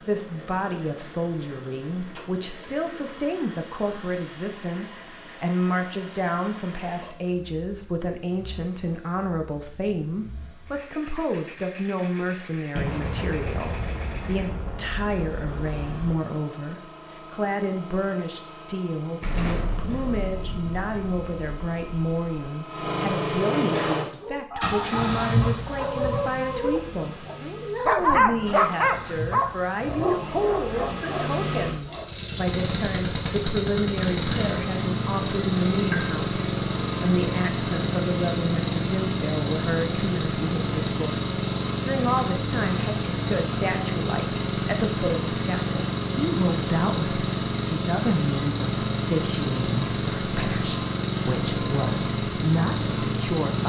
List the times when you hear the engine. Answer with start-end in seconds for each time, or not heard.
0.0-53.6.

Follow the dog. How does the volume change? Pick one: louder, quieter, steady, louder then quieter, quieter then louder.
louder then quieter.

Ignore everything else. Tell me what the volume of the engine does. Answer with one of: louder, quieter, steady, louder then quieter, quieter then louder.
louder.